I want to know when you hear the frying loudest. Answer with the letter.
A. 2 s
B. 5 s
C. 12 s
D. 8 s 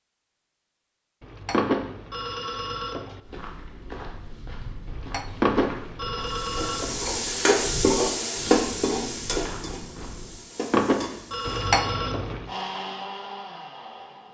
D.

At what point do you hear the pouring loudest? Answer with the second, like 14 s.
12 s.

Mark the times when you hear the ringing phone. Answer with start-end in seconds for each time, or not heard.
1.5-3.0, 5.4-6.9, 10.7-12.2.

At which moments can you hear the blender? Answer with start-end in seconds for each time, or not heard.
12.4-14.2.